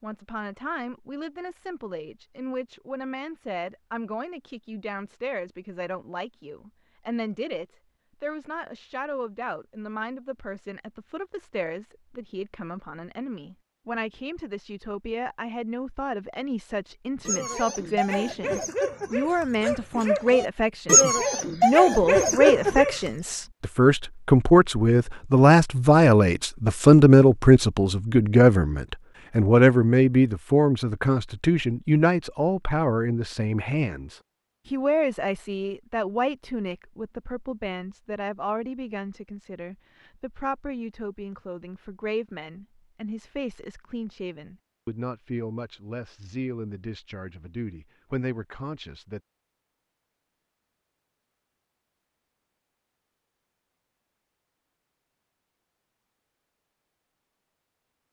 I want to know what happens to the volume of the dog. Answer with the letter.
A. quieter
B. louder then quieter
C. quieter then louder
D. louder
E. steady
D.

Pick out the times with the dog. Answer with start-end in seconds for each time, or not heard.
17.2-22.9.